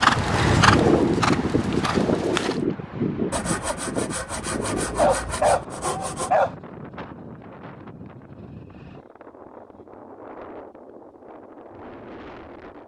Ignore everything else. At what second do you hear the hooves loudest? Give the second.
1 s.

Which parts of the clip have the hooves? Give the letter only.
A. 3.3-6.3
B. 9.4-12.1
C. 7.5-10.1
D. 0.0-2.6
D.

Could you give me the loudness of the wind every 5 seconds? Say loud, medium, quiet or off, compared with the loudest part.
loud, quiet, quiet.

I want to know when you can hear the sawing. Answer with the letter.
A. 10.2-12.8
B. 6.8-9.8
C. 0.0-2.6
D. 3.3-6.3
D.